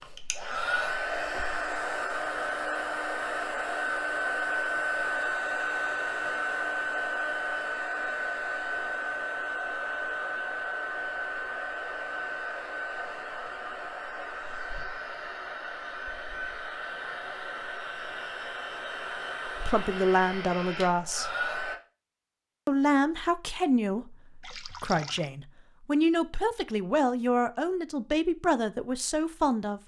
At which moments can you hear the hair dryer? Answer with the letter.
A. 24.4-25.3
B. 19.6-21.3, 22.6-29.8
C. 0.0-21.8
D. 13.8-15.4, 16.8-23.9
C.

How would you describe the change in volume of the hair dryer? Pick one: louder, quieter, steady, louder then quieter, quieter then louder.
quieter.